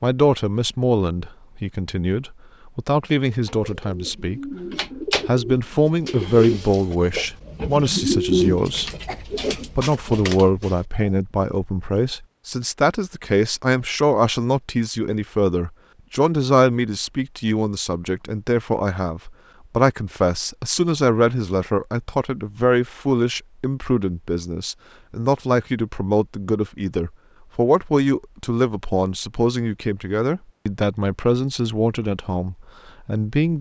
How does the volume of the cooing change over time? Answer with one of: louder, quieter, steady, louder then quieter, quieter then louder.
louder then quieter.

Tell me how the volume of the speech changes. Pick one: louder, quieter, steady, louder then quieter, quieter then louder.
steady.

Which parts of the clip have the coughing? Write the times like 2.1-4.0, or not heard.
9.1-9.7.